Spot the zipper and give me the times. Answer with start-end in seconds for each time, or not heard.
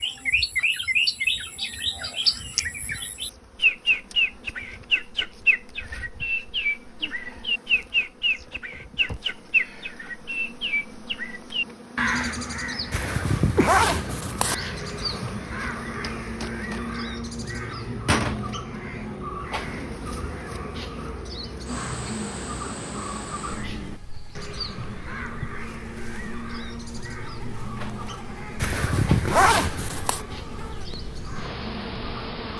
12.9-14.6, 28.6-30.2.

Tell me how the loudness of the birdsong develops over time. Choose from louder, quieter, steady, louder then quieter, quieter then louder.
quieter.